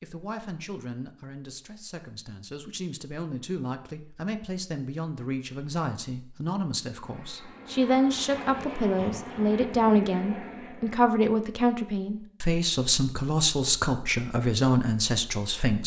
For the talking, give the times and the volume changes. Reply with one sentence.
You can hear the talking from 0.0 to 15.8 s, getting louder.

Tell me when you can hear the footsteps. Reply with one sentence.
The footsteps can't be heard in this clip.